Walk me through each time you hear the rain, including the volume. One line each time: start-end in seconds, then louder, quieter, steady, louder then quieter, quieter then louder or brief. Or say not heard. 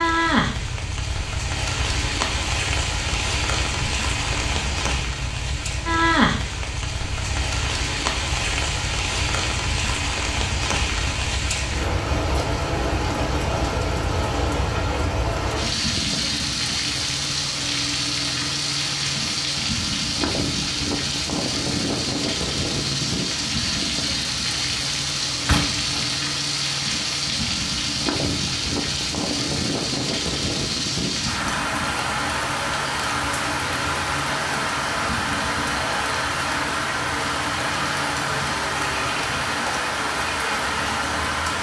0.0-41.5 steady.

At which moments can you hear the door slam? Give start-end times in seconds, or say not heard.
25.4-26.1.